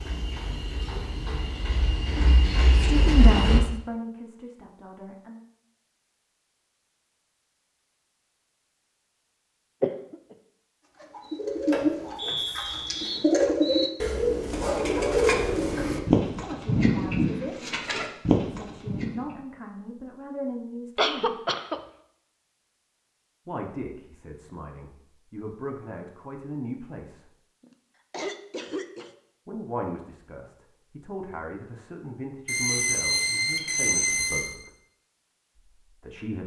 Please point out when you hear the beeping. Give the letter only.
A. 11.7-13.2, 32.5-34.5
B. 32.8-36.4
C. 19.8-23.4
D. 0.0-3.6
A.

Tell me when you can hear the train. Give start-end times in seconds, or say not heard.
0.0-3.6.